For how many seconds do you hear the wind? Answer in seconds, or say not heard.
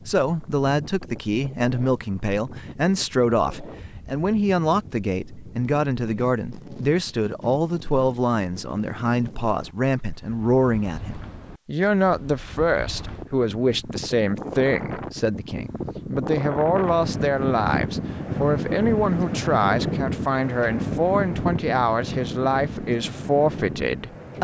24 s.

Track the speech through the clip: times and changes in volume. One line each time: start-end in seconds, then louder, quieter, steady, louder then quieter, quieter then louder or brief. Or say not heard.
0.1-24.3 steady.